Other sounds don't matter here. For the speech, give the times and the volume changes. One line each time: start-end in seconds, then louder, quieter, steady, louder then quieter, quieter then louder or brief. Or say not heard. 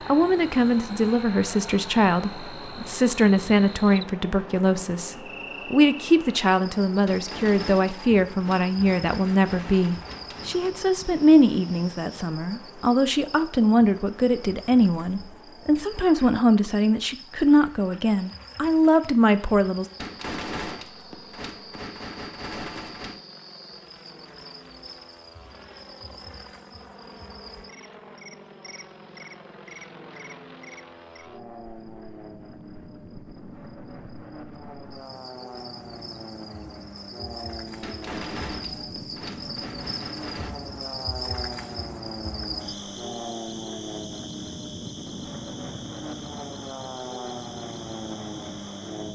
0.1-19.9 steady.